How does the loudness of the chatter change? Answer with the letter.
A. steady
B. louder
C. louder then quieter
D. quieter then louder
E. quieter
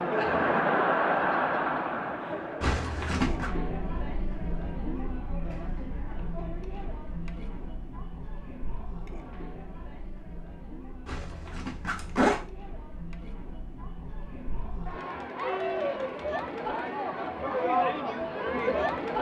D.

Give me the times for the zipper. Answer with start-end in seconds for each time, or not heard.
2.6-3.5, 11.1-12.4.